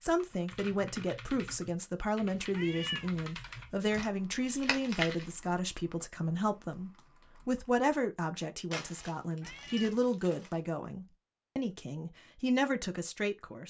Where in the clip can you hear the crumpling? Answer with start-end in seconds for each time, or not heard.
3.9-5.2, 8.7-10.6.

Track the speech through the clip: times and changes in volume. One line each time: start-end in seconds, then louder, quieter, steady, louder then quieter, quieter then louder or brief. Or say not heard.
0.0-13.6 steady.